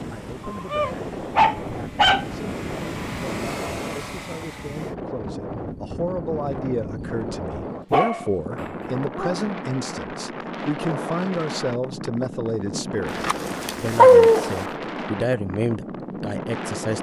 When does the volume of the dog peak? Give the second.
14 s.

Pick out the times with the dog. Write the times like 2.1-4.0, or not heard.
0.5-2.5, 7.9-9.4, 13.1-14.6.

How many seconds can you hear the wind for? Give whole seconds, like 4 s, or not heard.
17 s.